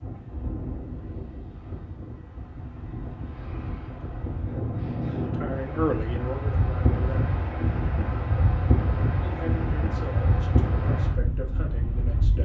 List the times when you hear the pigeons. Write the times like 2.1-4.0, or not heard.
not heard.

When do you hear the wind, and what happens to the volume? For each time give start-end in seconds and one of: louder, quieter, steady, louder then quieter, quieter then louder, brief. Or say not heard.
0.0-12.3 louder.